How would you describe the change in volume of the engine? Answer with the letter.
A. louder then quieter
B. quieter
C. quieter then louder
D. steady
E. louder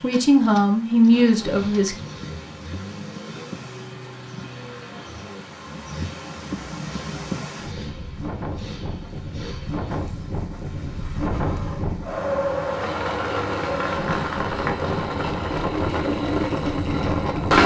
E.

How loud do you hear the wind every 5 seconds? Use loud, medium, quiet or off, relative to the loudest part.
quiet, medium, loud, loud.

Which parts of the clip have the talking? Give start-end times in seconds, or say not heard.
0.0-1.9.